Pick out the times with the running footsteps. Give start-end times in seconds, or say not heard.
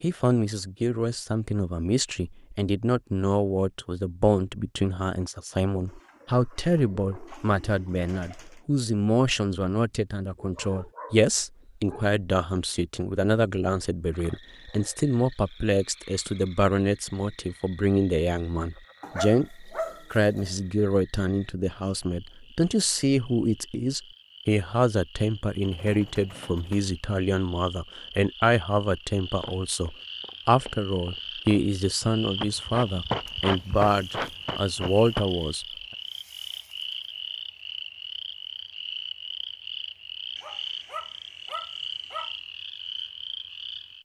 29.4-35.2.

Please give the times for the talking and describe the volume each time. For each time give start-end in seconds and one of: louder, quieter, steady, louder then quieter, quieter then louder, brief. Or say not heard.
0.0-35.6 steady.